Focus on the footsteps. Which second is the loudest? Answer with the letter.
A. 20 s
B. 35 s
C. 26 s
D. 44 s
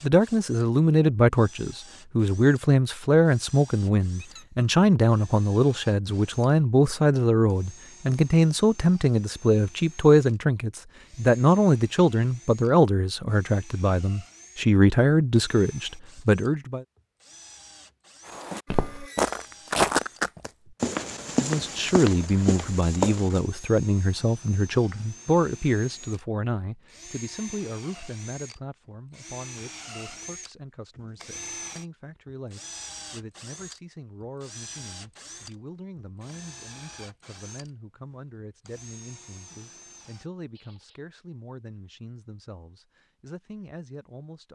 A.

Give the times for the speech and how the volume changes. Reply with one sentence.
The speech can be heard from 0.0 to 16.9 s, at a steady volume; and from 21.4 to 44.5 s, getting quieter.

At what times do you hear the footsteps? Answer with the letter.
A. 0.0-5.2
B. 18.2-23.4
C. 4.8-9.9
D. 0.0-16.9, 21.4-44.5
B.